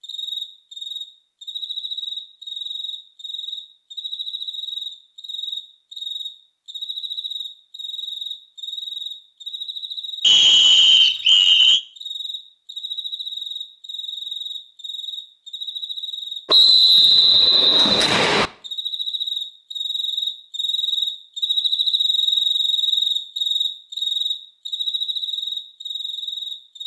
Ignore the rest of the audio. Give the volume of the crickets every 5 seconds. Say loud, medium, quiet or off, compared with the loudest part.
medium, medium, medium, medium, loud, medium.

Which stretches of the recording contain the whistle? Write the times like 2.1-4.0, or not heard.
10.2-11.8, 16.4-18.5.